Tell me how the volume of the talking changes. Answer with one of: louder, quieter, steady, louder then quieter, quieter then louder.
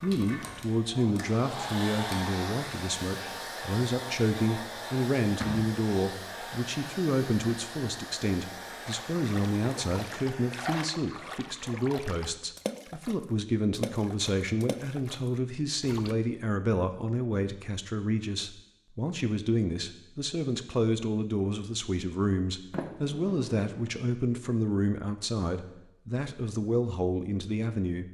steady.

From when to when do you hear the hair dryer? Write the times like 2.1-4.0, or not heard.
0.0-10.7.